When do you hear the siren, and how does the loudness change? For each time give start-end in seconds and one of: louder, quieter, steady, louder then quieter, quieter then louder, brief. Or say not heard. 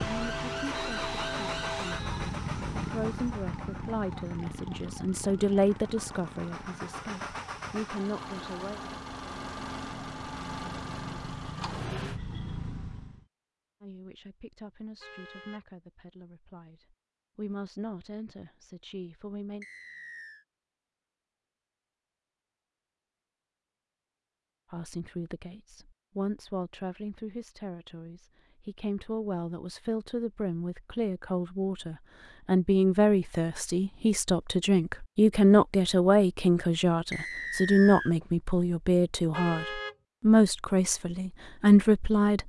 0.0-13.2 quieter then louder.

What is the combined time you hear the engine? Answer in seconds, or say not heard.
12 s.